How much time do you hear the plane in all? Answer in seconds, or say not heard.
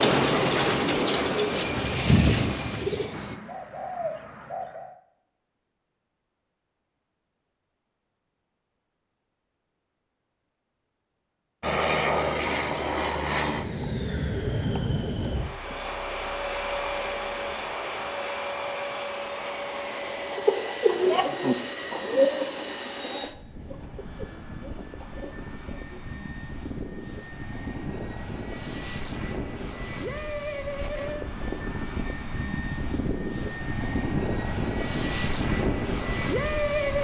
29 s.